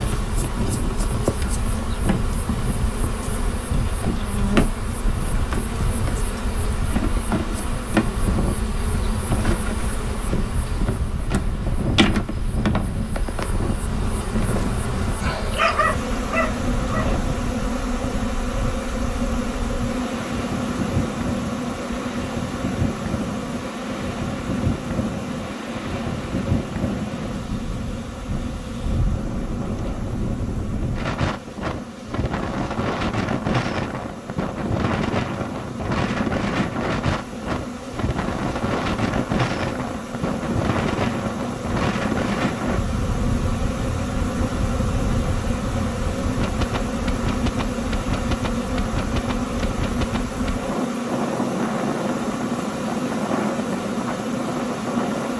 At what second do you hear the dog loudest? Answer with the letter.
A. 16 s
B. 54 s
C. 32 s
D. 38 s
A.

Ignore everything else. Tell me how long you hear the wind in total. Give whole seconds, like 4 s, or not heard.
55 s.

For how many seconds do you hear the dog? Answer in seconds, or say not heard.
2 s.